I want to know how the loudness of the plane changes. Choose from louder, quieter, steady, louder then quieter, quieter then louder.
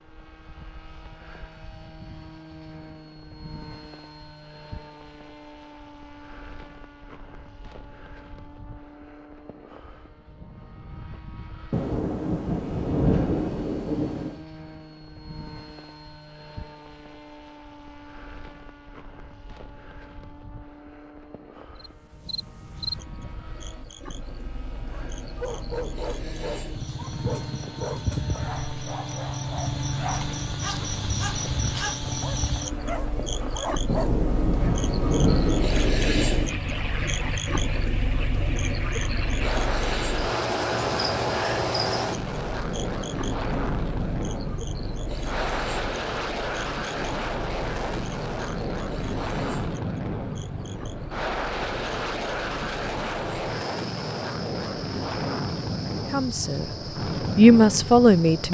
louder.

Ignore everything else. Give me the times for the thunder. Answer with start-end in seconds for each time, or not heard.
11.7-14.4, 33.9-36.6.